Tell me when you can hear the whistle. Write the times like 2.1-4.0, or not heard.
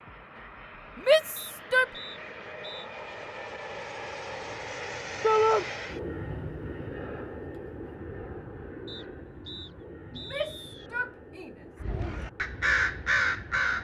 1.4-2.9, 8.8-10.9.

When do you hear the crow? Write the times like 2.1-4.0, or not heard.
11.8-13.7.